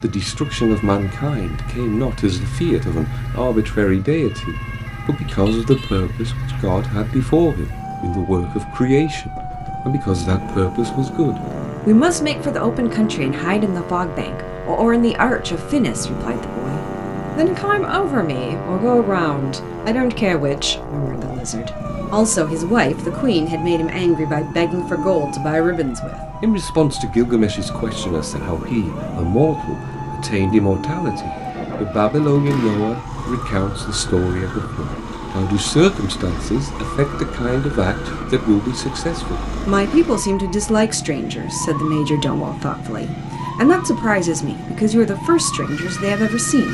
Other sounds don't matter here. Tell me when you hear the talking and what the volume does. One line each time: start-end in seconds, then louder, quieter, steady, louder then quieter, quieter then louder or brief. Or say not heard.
0.0-46.6 steady.